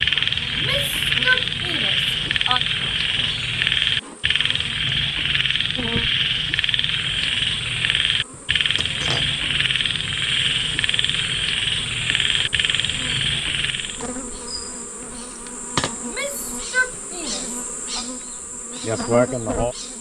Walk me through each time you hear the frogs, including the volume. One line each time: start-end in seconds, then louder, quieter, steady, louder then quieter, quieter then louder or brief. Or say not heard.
0.0-14.0 steady.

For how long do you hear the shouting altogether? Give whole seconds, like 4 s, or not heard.
4 s.